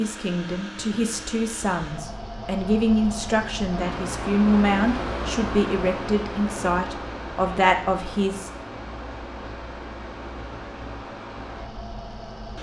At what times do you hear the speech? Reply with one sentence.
You can hear the speech from 0.0 to 8.5 s.